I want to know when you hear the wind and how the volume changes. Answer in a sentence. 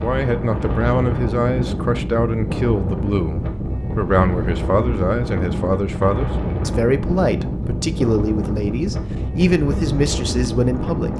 You can hear the wind from 0.0 to 11.1 s, at a steady volume.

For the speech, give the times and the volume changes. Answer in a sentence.
You can hear the speech from 0.0 to 11.1 s, at a steady volume.